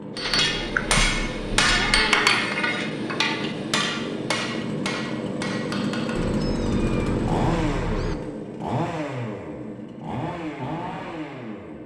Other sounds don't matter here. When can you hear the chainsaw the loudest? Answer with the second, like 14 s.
7 s.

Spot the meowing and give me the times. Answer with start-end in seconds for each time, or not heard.
0.2-1.0, 1.6-2.4, 6.2-8.2.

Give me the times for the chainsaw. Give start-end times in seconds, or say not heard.
0.0-11.8.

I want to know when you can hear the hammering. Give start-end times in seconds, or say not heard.
0.1-6.3.